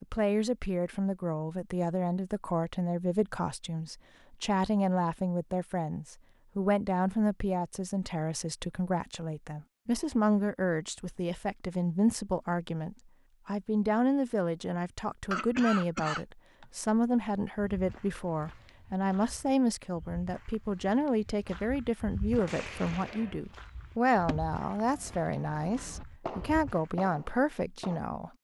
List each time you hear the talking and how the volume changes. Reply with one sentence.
The talking can be heard from 0.0 to 28.3 s, at a steady volume.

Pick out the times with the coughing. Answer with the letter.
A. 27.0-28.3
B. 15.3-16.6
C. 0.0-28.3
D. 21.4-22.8
B.